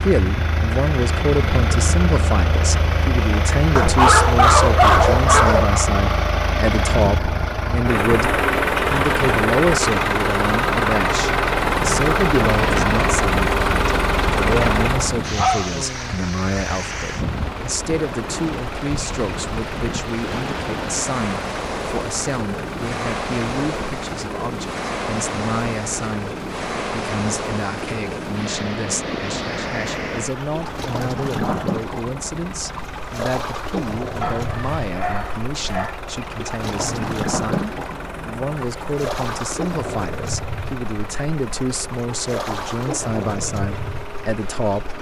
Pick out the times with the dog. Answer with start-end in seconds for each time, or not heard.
3.8-5.8, 15.3-16.1, 34.2-36.0.